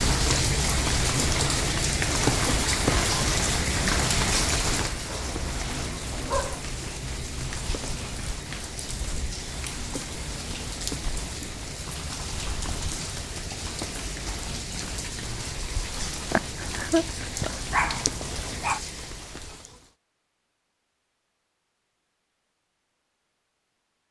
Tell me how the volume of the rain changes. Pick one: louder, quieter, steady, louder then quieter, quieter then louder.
quieter.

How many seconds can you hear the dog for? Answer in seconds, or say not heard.
4 s.